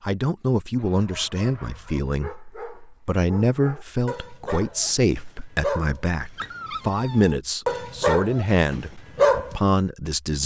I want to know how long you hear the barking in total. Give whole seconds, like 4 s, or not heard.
9 s.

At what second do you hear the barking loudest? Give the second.
9 s.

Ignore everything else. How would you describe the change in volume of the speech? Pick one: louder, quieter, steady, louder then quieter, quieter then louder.
steady.